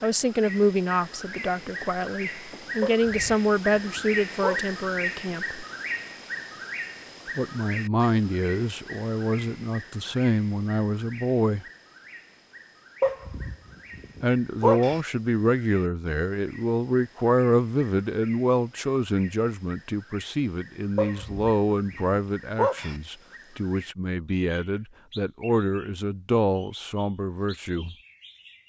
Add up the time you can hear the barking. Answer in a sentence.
The barking can be heard for 6 seconds in total.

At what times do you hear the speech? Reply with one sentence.
The speech can be heard from 0.0 to 5.6 s, from 7.3 to 11.7 s and from 14.2 to 27.9 s.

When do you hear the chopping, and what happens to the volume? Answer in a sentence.
The chopping can't be heard in this clip.